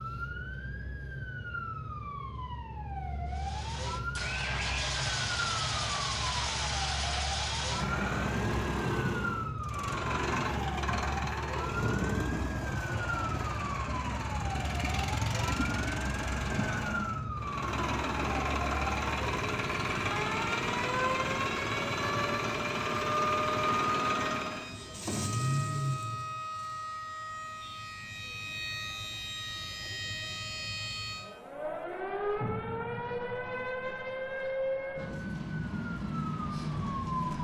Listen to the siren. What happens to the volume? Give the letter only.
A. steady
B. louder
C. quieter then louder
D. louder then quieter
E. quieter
A.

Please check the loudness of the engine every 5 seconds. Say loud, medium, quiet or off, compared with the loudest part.
loud, loud, loud, loud, loud, loud, off, off.